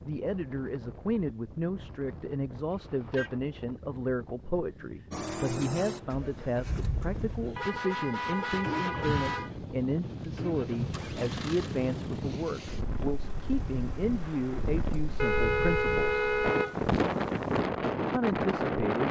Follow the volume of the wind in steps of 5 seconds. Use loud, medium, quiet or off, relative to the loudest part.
quiet, quiet, medium, loud.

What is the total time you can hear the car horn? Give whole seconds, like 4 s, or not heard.
4 s.